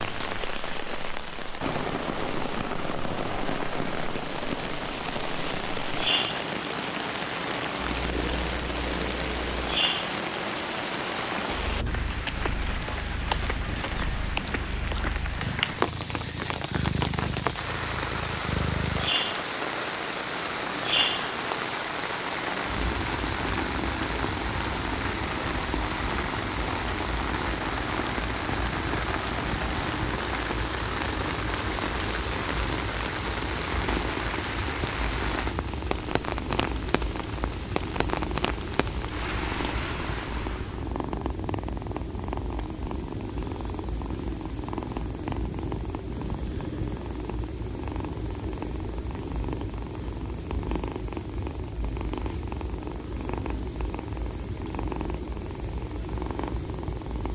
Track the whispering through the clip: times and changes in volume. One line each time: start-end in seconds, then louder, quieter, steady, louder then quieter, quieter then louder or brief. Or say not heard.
not heard.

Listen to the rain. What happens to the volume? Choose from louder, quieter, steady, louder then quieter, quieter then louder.
steady.